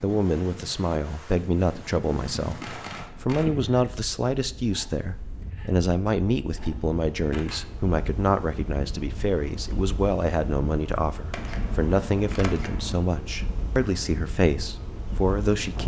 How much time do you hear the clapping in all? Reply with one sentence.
The clapping can't be heard in this clip.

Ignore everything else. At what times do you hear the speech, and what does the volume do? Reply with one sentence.
You can hear the speech from 0.0 to 15.8 s, at a steady volume.